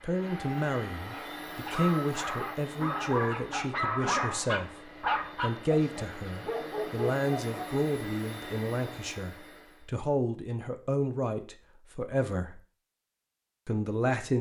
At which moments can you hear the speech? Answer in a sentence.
You can hear the speech from 0.0 to 4.7 s, from 5.4 to 12.6 s and from 13.7 to 14.3 s.